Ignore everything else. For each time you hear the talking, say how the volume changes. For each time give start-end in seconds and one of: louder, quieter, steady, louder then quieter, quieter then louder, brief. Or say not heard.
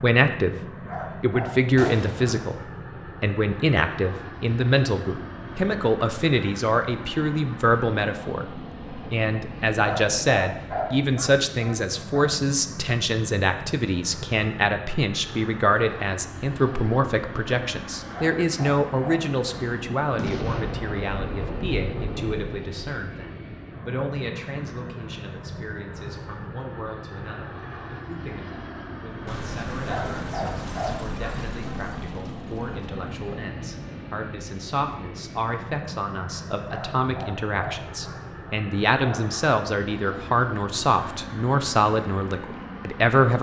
0.0-0.6 brief
1.2-2.6 brief
3.2-43.3 quieter then louder.